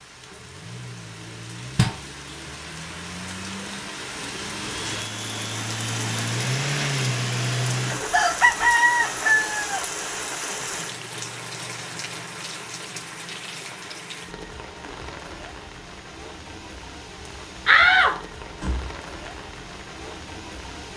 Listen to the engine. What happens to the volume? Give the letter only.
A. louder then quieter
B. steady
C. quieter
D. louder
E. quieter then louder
D.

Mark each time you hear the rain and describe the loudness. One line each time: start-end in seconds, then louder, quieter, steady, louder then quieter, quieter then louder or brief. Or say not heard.
0.0-20.9 louder then quieter.